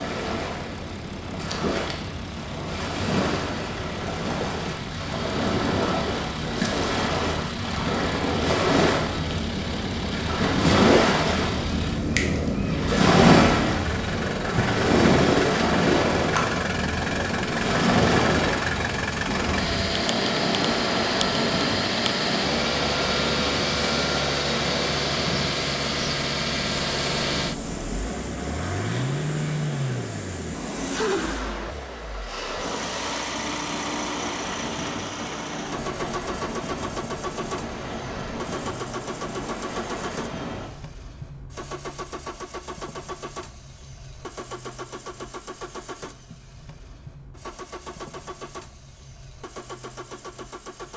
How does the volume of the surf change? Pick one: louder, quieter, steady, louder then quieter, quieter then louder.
louder then quieter.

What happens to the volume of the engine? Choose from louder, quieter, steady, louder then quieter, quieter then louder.
louder then quieter.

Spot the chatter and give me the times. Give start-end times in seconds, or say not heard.
not heard.